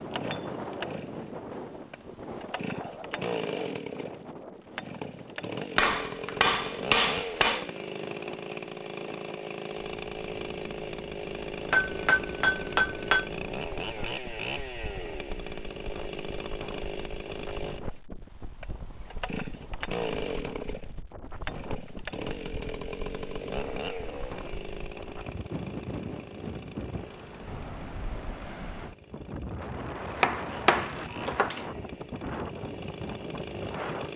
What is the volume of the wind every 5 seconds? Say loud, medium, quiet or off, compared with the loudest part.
loud, medium, medium, medium, medium, loud, loud.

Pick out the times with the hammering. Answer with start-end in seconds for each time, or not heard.
5.8-7.7, 11.7-13.2, 30.2-31.7.